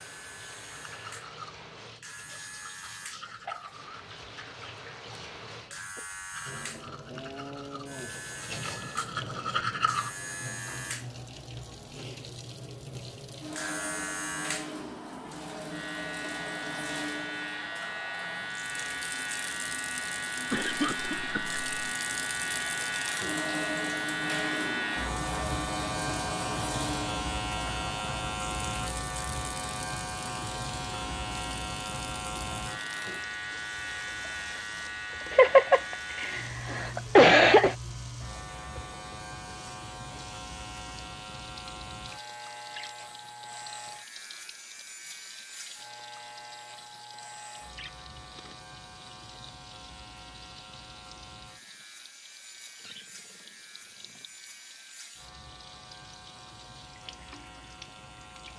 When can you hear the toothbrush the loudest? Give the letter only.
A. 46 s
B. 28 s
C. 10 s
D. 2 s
C.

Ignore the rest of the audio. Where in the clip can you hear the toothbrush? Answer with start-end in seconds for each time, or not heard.
0.7-10.1.